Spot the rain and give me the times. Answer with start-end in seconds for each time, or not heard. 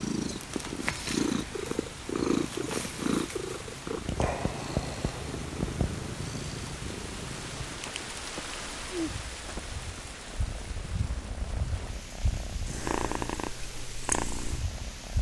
0.0-15.1.